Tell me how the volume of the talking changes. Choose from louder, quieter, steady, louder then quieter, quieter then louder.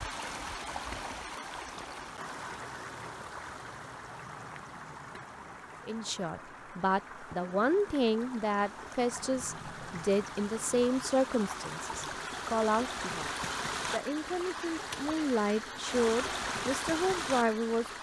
quieter then louder.